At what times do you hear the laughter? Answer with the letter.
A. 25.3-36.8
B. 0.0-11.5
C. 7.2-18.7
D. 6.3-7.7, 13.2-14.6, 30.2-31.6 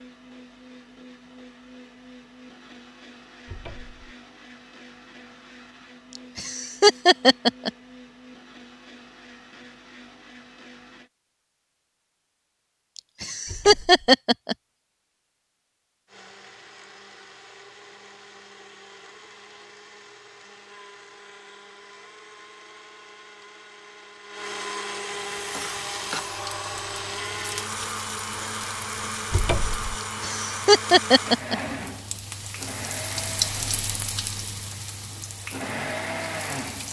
D.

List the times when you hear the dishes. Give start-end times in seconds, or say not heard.
not heard.